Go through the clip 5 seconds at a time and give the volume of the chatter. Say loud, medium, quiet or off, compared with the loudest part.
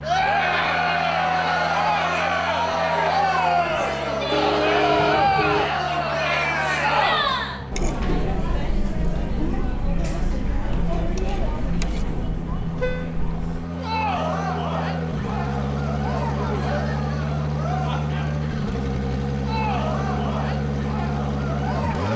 loud, loud, medium, medium, medium.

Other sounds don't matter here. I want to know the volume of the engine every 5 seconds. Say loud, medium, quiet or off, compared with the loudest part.
medium, medium, medium, loud, loud.